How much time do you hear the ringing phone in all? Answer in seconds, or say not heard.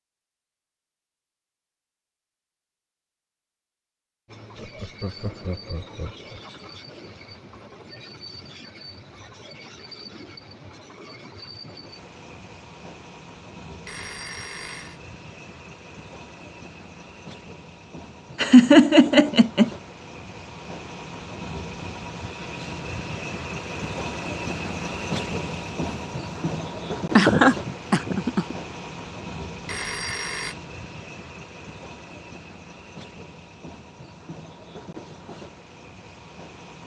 2 s.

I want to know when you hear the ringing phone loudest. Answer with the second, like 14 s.
30 s.